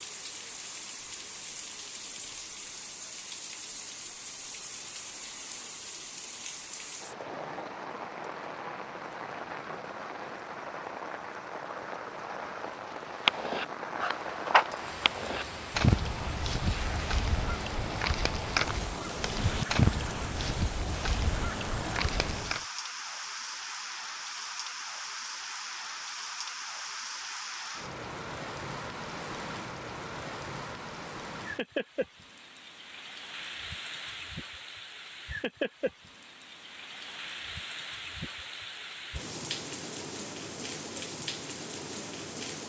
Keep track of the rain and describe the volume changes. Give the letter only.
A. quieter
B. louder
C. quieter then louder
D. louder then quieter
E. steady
E.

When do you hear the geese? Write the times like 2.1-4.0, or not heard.
13.2-22.6.